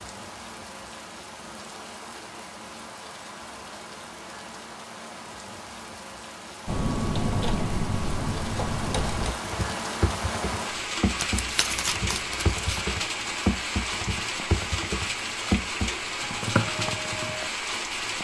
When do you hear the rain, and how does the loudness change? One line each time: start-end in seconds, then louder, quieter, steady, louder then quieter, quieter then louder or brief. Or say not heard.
0.0-18.2 louder.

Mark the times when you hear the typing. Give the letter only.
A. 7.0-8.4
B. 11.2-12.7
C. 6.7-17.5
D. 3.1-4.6
C.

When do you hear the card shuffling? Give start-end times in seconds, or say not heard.
11.2-12.7.